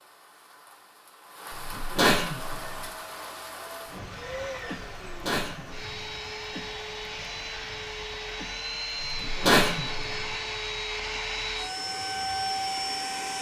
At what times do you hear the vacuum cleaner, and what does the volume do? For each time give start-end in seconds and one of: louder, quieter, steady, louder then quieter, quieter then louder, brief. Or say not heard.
2.5-13.3 louder.